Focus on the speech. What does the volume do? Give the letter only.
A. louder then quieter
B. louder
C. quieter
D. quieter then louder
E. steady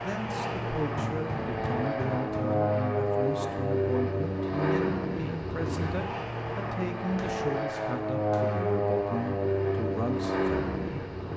E.